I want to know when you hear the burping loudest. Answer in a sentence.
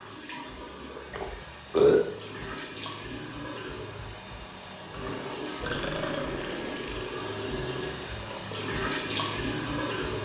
The volume of the burping peaks at 2 seconds.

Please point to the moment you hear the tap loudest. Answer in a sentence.
The loudest moment of the tap is at 9 seconds.